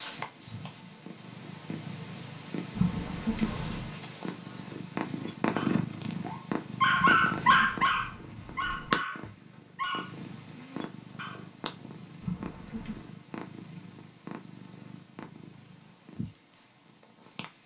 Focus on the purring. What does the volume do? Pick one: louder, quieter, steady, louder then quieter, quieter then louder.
louder then quieter.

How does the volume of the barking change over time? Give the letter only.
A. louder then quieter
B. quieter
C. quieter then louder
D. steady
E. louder
A.